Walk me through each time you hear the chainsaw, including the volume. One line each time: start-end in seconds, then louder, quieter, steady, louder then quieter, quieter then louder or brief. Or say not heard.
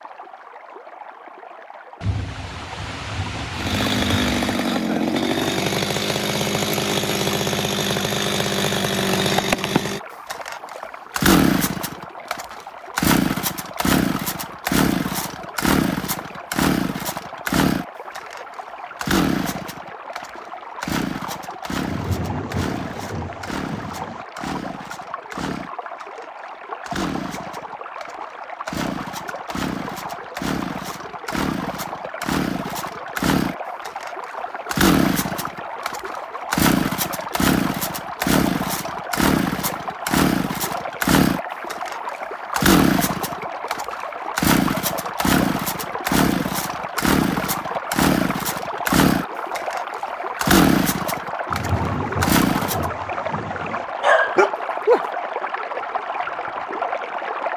3.5-52.9 quieter then louder.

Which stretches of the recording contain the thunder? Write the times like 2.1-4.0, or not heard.
2.0-4.6, 21.9-24.2, 51.5-53.9.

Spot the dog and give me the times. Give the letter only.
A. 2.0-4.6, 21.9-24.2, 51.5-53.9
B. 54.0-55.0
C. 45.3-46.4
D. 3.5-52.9
B.